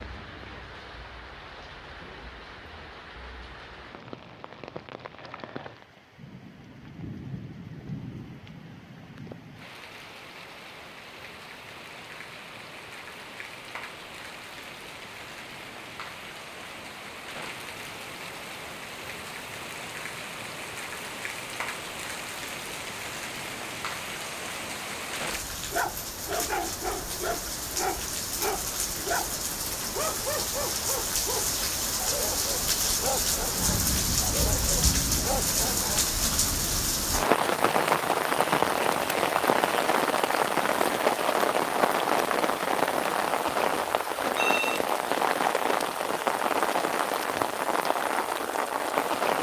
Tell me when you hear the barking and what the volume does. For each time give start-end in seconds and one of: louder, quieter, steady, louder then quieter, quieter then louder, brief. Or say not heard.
25.7-36.0 steady.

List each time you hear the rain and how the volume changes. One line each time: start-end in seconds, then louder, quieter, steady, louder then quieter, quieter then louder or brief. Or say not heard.
0.0-49.3 louder.